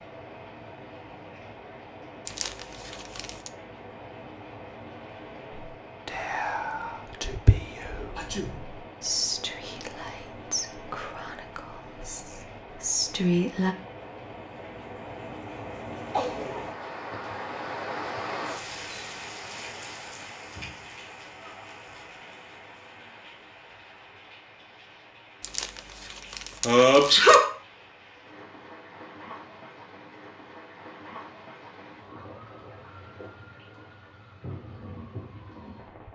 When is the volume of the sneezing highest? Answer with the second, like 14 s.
27 s.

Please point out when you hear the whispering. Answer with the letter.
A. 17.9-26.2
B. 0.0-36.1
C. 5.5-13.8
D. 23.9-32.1
C.